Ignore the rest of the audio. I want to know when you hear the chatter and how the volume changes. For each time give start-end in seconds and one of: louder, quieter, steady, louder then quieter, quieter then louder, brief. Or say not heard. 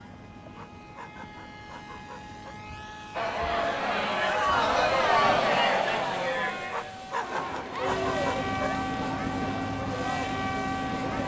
3.1-11.2 quieter.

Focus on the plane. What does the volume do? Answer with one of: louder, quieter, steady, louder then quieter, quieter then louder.
louder.